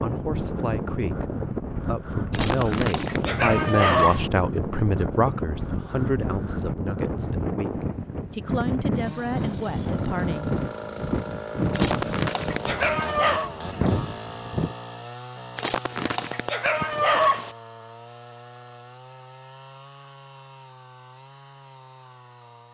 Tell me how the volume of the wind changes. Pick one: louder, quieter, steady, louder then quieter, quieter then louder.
steady.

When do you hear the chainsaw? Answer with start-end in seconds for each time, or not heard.
8.9-22.6.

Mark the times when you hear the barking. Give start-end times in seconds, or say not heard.
2.3-4.3, 11.8-13.5, 15.6-17.5.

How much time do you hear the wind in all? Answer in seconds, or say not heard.
15 s.